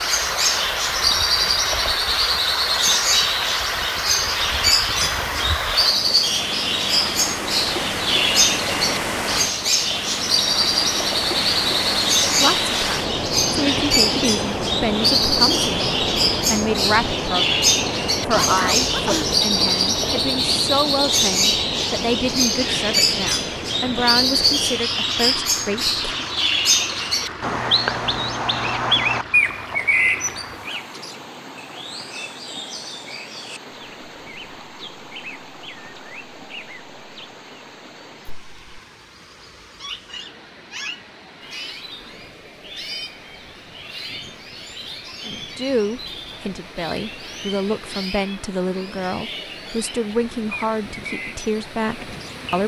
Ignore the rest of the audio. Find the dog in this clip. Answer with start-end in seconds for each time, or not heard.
18.3-19.4.